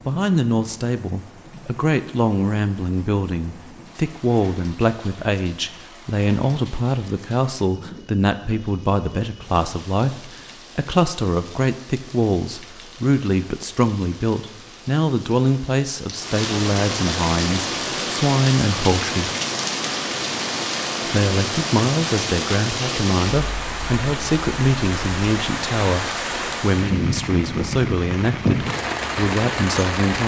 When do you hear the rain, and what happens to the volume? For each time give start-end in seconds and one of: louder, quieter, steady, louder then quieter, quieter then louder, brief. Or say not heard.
0.0-30.2 louder.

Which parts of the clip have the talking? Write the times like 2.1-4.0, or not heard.
0.1-19.3, 21.1-30.2.